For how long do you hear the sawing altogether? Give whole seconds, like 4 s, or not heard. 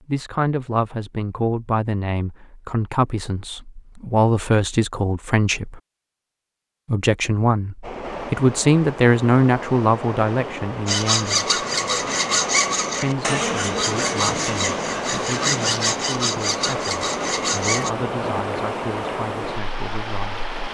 7 s.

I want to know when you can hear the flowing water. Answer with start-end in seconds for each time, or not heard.
7.8-20.7.